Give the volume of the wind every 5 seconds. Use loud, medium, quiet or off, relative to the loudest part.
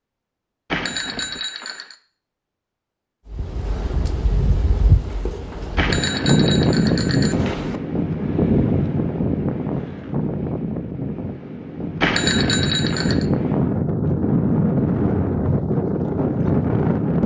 medium, loud, loud, loud.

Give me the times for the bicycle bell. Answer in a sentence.
You can hear the bicycle bell from 0.7 to 1.9 s, from 5.8 to 7.8 s and from 12.0 to 13.2 s.